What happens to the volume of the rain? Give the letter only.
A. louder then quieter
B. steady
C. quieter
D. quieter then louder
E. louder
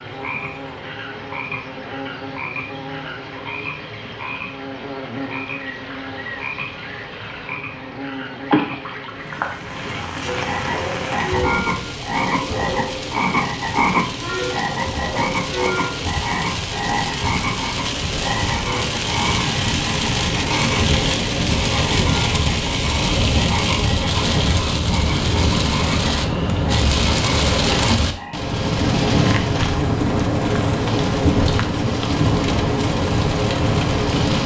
E.